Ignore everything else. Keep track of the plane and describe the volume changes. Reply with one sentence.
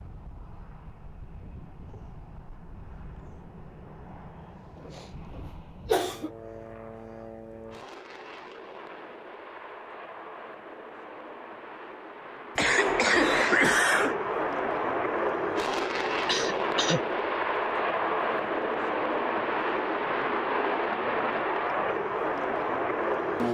The loudness of the plane goes up.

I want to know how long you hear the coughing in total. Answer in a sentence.
The coughing can be heard for 4 seconds in total.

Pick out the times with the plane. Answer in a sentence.
You can hear the plane from 0.0 to 23.4 s.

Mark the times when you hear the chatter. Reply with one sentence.
You can't hear the chatter here.